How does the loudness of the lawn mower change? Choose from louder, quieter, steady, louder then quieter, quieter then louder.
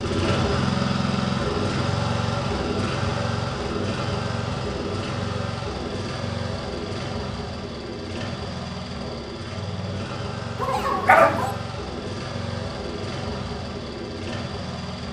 quieter.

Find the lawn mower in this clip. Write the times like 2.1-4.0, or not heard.
0.0-15.0.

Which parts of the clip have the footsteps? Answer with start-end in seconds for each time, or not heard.
not heard.